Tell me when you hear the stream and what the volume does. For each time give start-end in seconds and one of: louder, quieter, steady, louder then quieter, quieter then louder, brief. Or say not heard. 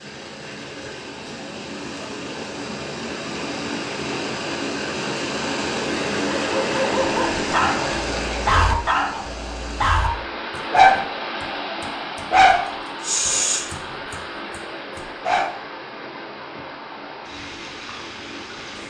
0.0-18.8 louder then quieter.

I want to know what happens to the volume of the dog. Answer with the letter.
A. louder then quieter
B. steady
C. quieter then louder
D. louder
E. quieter
A.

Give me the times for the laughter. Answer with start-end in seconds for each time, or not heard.
not heard.